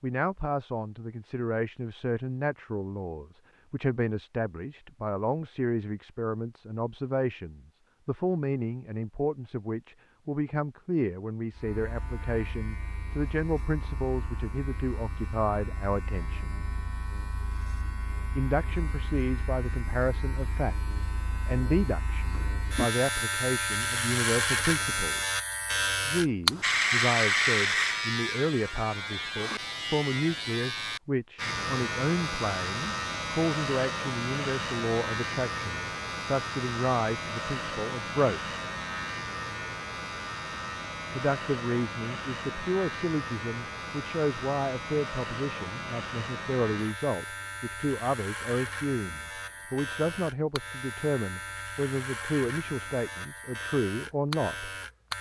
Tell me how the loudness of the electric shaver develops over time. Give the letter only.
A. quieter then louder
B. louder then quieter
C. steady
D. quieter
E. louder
B.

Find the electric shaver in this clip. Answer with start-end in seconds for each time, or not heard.
11.5-55.1.